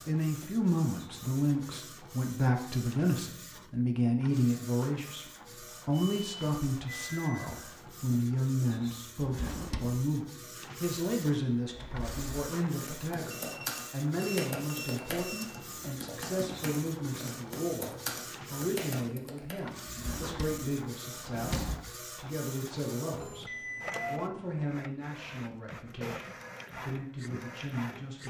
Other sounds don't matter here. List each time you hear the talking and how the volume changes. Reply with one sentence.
You can hear the talking from 0.1 to 28.2 s, getting quieter.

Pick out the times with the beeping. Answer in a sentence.
The beeping can be heard from 6.0 to 7.8 s, from 13.2 to 15.5 s and from 23.2 to 24.7 s.